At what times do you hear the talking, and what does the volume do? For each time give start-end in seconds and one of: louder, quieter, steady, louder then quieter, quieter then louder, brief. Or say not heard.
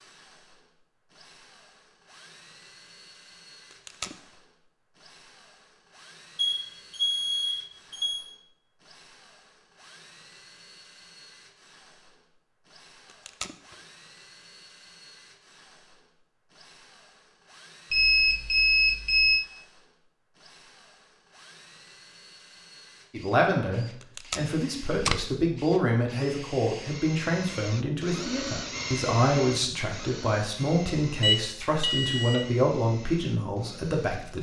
23.1-34.3 steady.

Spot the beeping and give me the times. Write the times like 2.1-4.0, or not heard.
6.3-8.3, 17.9-19.4, 31.2-32.5.